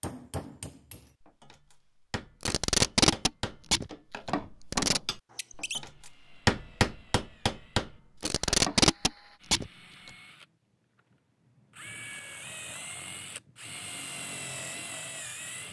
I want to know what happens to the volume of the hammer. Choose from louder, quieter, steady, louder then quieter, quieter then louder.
louder.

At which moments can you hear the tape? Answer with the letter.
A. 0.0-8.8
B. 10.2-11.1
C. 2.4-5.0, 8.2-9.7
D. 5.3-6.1
C.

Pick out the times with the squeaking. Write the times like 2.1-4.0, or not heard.
5.3-6.1.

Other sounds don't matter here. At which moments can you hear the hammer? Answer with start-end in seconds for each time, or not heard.
0.0-8.8.